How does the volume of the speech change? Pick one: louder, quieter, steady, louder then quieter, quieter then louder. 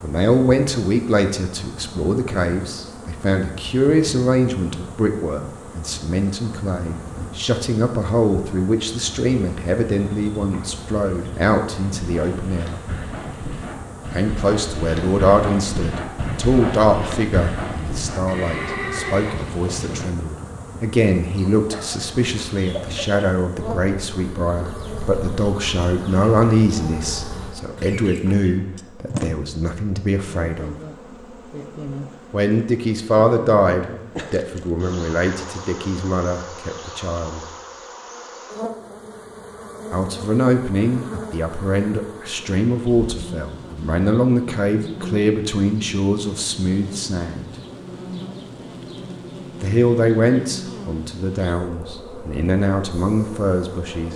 steady.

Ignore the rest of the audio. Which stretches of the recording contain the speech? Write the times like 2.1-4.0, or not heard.
0.0-12.8, 14.1-30.8, 32.3-37.5, 39.9-47.5, 49.6-54.1.